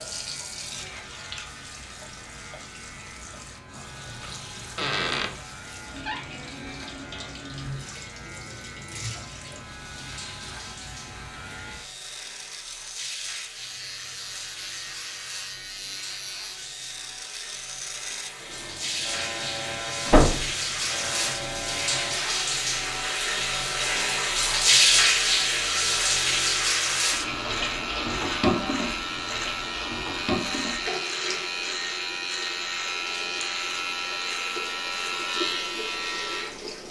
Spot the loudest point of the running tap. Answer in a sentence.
The loudest moment of the running tap is at 25 seconds.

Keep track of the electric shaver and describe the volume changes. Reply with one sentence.
The loudness of the electric shaver goes up.